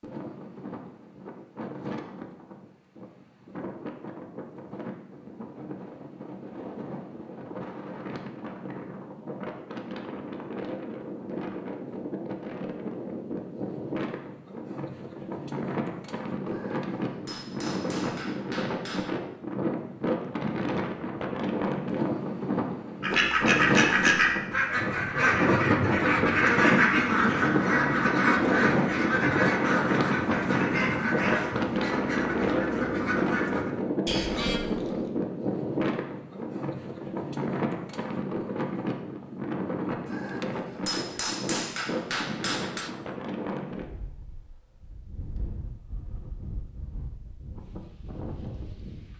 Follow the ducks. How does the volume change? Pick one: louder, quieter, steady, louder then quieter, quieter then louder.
quieter.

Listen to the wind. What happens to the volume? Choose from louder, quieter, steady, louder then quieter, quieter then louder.
louder then quieter.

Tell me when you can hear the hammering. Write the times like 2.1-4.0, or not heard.
16.4-19.1, 40.0-43.0.